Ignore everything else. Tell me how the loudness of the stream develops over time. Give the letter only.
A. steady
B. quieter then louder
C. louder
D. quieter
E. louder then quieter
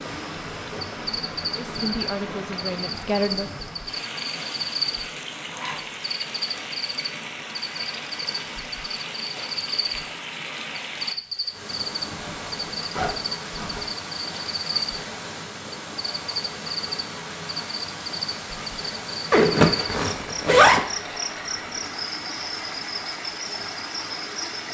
A.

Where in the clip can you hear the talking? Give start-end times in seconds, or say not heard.
1.5-3.5.